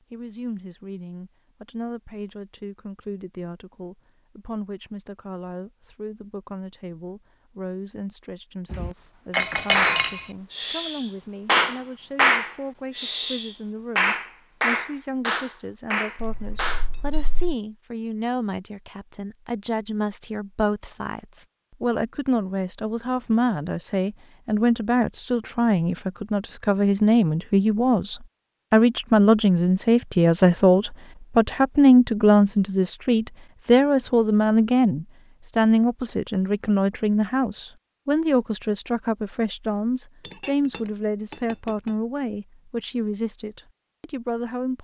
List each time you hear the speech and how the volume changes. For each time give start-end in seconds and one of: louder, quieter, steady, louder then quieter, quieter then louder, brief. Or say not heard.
0.1-44.7 louder then quieter.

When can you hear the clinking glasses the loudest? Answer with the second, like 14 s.
10 s.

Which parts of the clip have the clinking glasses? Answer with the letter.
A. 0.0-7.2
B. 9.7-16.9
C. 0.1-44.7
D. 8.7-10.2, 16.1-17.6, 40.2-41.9
D.